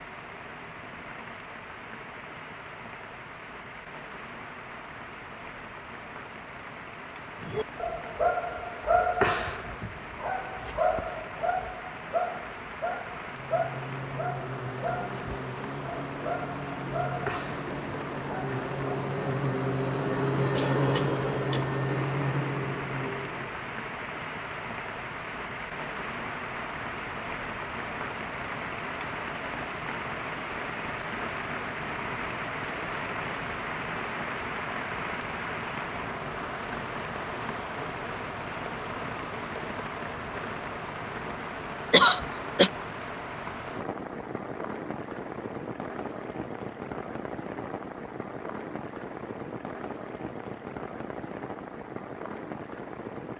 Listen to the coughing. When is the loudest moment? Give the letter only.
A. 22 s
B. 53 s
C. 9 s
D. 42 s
D.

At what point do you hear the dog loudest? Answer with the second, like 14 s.
9 s.